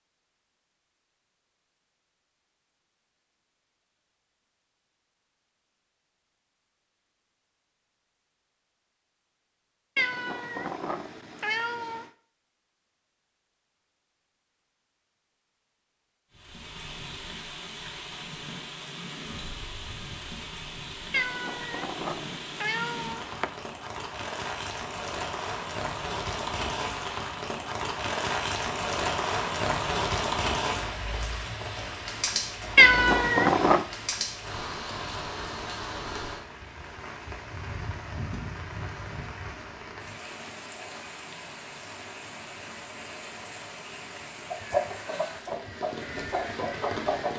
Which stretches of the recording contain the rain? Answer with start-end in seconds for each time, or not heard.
16.3-47.3.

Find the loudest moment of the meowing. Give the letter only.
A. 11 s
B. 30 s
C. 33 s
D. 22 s
C.